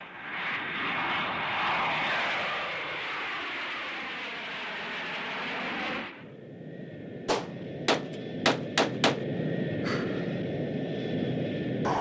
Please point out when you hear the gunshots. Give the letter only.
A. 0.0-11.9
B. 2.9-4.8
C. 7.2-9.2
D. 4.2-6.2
C.